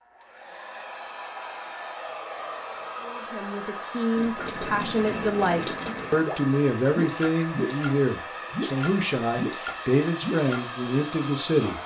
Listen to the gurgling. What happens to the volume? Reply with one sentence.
The volume of the gurgling stays about the same.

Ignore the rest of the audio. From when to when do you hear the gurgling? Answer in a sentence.
The gurgling can be heard from 4.2 to 10.7 s.